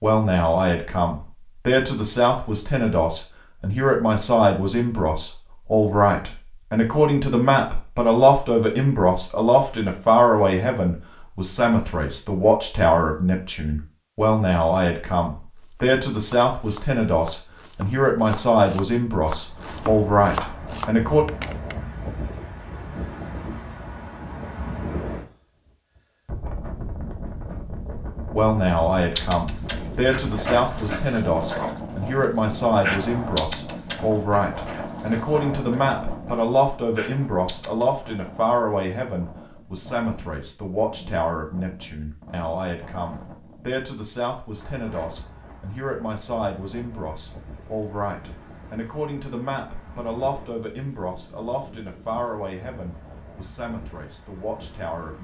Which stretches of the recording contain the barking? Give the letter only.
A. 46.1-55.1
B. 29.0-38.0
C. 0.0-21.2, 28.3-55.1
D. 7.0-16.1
B.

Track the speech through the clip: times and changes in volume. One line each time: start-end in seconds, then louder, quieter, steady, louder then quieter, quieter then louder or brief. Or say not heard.
0.0-21.2 steady
28.3-55.1 quieter.